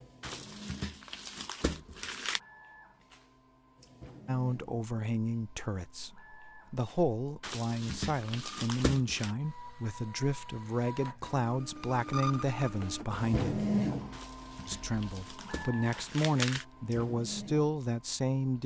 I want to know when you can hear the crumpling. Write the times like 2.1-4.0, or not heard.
0.2-2.4, 7.4-9.3, 14.1-16.6.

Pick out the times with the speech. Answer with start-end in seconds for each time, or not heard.
4.2-13.6, 14.7-18.6.